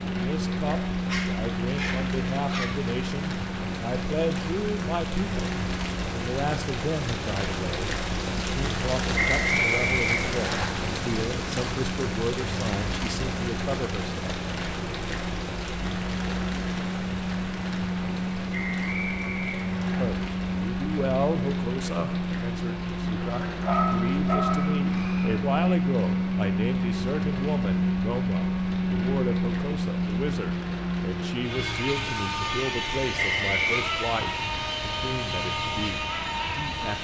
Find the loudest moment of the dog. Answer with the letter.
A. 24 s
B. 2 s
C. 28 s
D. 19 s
A.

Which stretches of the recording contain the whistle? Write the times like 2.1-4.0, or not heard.
9.2-10.7, 18.5-20.1, 33.1-33.9.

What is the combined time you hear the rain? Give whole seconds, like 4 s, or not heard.
37 s.